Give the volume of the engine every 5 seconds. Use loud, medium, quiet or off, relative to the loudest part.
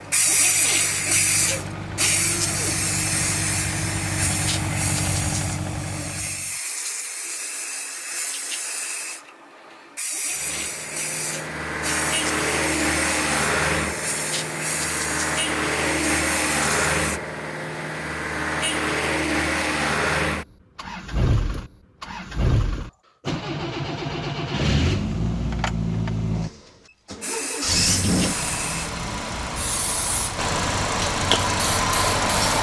medium, medium, loud, loud, loud, loud, loud.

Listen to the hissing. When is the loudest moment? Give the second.
1 s.